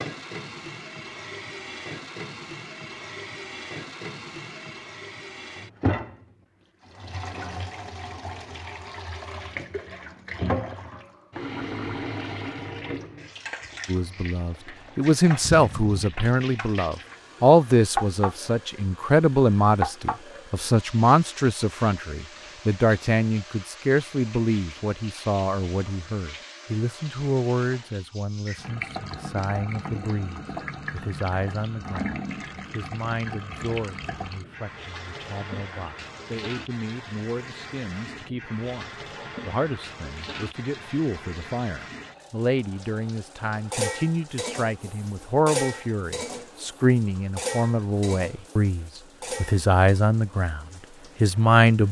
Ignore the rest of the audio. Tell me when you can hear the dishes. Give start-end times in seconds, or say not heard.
43.5-50.0.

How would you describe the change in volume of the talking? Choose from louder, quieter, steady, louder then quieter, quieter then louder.
quieter then louder.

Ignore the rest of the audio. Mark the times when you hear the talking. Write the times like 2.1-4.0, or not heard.
13.8-51.8.